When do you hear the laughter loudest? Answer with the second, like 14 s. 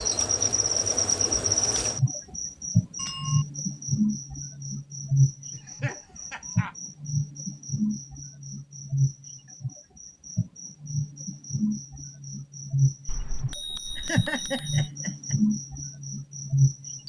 14 s.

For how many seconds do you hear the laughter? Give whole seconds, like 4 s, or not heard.
3 s.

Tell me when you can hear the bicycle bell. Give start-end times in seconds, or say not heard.
3.0-3.5, 13.1-14.9.